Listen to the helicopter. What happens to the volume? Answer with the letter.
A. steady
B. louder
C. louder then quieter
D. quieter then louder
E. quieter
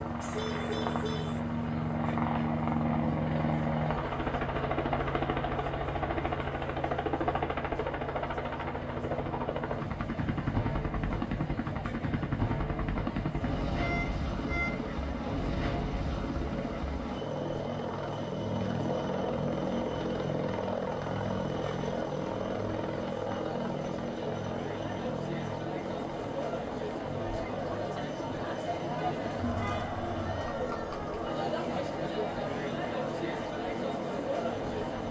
E.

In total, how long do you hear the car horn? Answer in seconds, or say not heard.
3 s.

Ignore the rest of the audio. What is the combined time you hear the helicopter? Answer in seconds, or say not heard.
35 s.